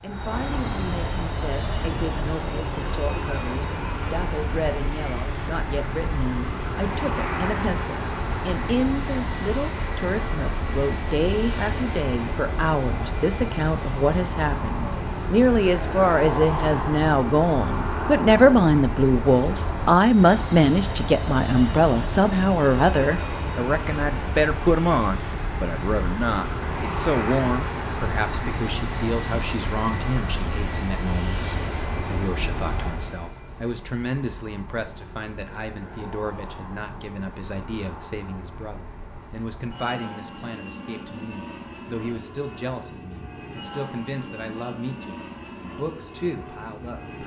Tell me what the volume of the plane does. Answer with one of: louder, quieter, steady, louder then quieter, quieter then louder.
quieter.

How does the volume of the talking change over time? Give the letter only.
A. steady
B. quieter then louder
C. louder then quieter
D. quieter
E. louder
C.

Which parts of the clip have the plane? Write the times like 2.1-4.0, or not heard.
0.0-47.2.